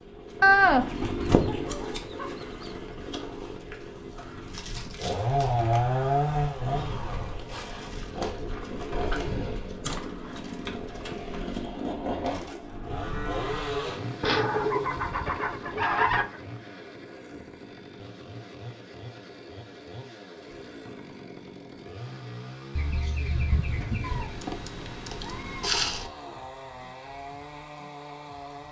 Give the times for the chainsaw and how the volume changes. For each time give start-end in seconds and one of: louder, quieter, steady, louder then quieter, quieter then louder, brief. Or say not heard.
0.0-28.6 quieter.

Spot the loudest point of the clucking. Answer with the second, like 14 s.
1 s.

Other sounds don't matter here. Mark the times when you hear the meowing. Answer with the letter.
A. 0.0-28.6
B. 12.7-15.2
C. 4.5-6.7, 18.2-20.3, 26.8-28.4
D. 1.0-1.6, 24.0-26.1
D.